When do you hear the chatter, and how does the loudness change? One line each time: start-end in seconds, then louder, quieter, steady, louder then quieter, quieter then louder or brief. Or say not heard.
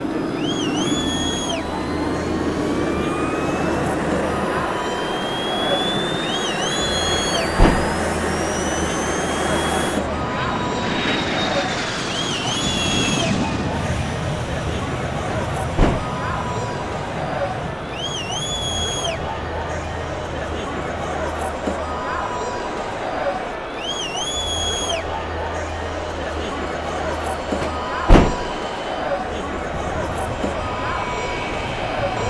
0.0-32.2 steady.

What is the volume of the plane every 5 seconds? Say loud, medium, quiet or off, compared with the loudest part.
loud, loud, loud, medium, quiet, quiet, medium.